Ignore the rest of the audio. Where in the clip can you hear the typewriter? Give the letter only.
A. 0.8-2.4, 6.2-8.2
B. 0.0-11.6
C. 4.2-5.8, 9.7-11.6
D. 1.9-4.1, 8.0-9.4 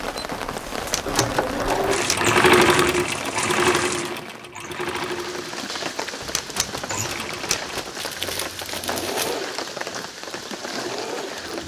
A.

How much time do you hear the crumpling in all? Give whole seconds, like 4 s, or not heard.
4 s.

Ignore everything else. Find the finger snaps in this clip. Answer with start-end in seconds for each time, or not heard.
not heard.